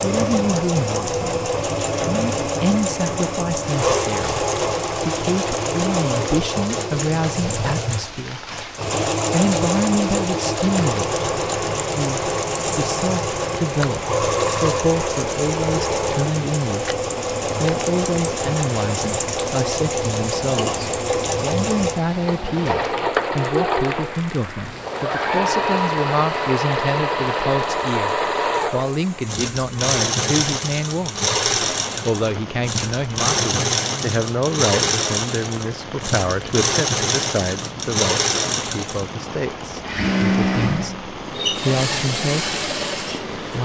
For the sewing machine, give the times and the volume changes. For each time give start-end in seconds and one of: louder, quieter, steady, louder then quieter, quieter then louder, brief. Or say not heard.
0.0-43.6 steady.